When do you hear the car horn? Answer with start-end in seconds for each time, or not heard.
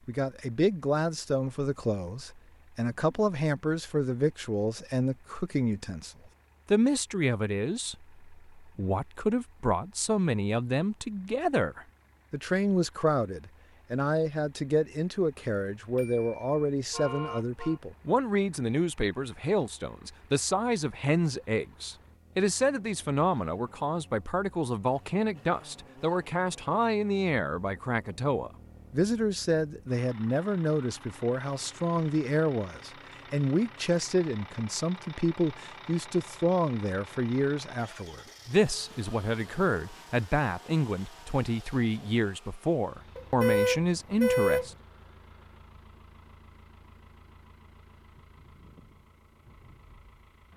15.9-17.8, 43.1-44.8.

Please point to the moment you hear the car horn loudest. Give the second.
44 s.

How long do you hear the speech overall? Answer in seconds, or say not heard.
44 s.